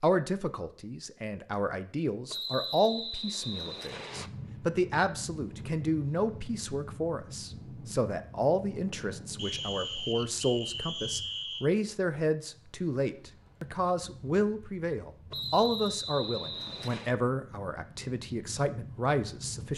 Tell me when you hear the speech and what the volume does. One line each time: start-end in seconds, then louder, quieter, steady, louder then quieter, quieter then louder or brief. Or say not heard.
0.0-19.7 steady.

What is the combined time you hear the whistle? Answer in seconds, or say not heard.
6 s.